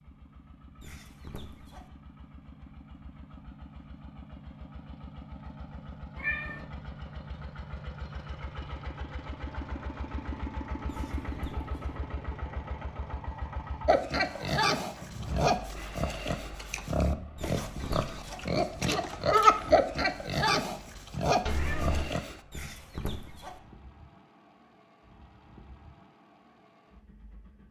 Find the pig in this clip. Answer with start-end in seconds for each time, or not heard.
13.8-22.4.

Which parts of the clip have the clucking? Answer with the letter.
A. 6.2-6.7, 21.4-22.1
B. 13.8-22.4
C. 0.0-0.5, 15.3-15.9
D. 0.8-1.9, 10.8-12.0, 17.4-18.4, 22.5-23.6
D.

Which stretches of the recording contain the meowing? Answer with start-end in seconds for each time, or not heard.
6.2-6.7, 21.4-22.1.